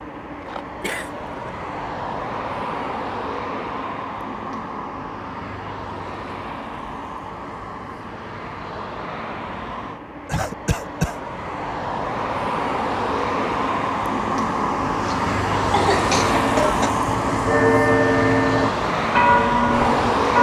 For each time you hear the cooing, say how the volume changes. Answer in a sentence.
You can't hear the cooing here.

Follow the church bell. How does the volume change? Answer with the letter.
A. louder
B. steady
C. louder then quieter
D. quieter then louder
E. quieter
A.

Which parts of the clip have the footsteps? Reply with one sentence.
You can't hear the footsteps here.